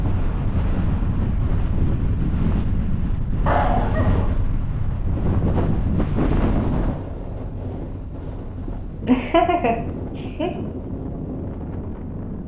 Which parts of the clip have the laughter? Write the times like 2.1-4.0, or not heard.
3.5-4.3, 8.7-10.6.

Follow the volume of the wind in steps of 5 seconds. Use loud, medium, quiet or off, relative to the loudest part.
loud, loud, medium.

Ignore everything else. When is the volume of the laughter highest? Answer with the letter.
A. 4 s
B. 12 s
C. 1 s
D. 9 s
D.